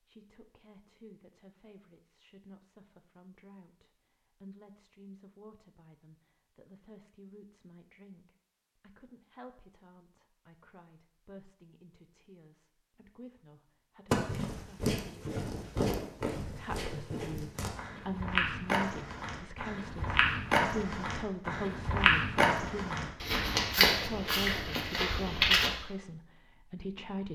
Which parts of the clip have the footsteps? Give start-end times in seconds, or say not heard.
14.1-25.7.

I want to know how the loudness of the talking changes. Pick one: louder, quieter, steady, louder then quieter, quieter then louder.
louder.